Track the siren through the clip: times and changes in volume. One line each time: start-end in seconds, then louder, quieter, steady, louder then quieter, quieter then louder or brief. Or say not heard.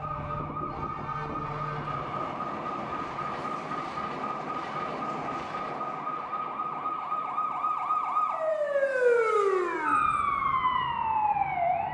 0.0-11.8 louder.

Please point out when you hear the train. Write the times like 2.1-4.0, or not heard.
0.0-11.8.